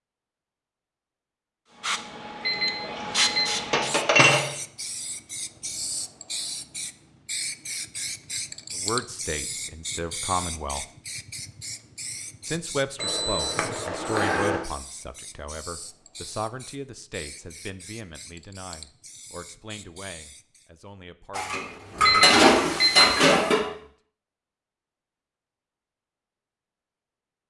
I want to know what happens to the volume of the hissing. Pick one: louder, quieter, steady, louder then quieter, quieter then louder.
quieter.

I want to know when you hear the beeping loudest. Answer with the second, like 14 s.
23 s.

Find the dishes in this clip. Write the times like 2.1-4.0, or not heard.
3.0-4.5, 21.4-23.6.